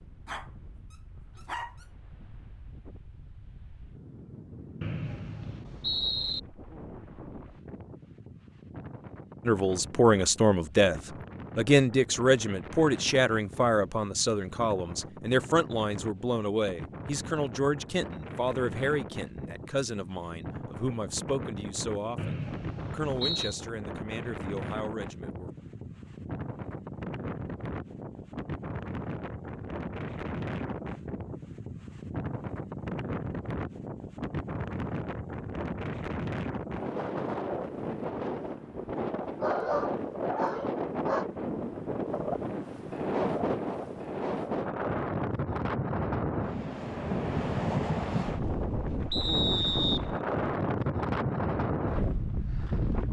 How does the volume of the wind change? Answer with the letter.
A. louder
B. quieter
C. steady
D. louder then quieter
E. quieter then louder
A.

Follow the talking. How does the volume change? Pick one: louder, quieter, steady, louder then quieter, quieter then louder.
quieter.